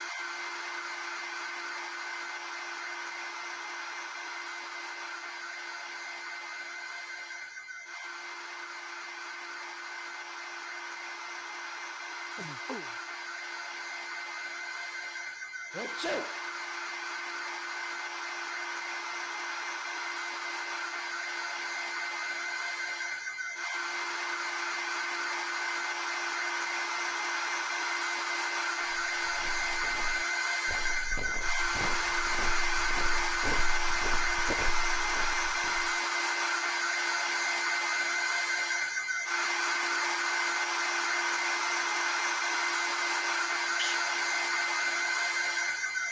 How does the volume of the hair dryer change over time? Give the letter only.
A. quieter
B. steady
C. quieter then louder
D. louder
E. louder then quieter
D.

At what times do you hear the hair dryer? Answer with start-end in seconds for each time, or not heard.
0.0-46.0.